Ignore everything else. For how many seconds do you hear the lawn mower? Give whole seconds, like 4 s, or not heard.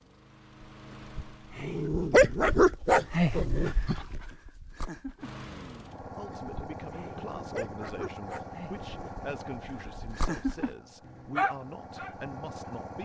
10 s.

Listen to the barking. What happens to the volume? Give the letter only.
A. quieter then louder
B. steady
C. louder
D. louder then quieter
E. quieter
A.